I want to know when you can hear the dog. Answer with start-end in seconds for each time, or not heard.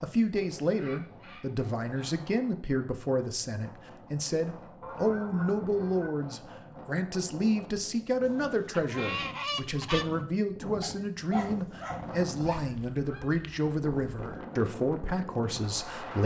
10.8-12.7.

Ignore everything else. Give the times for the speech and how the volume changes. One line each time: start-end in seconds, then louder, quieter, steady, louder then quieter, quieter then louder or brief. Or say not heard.
0.0-16.2 steady.